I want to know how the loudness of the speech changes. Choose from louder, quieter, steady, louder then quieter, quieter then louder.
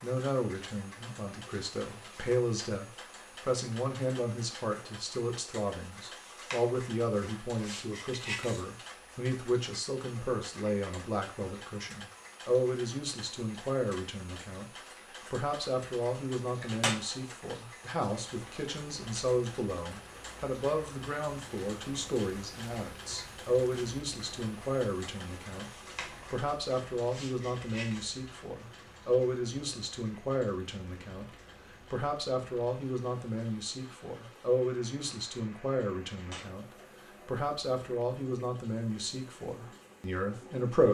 steady.